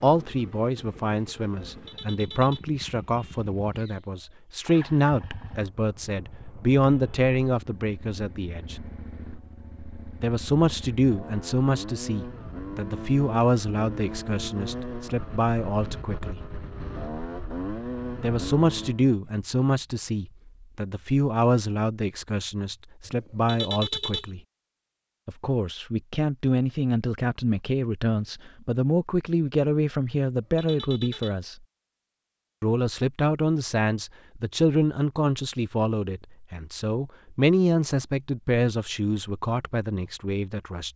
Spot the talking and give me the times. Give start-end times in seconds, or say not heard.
0.0-8.8, 10.2-16.4, 18.2-24.4, 25.2-31.6, 32.6-40.9.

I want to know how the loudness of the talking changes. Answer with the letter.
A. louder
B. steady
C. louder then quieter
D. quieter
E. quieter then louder
B.